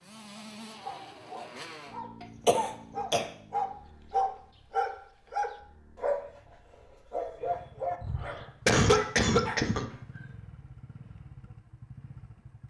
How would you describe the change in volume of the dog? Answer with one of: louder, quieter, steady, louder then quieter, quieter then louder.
louder then quieter.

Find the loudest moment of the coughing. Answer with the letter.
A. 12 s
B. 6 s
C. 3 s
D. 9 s
D.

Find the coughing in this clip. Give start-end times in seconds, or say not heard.
2.2-3.2, 8.0-9.9.